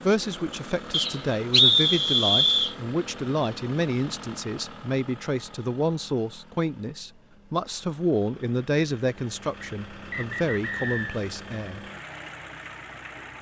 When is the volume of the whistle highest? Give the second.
2 s.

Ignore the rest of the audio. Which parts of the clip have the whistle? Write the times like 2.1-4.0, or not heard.
0.9-2.8, 9.6-11.2.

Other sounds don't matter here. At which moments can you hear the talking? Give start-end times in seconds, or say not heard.
0.0-11.8.